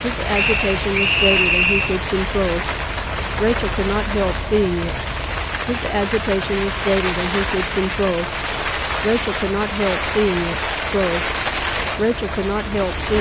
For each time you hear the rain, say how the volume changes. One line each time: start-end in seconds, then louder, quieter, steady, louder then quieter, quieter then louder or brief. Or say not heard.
0.0-13.1 steady.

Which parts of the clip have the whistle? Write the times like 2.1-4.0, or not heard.
0.3-2.0.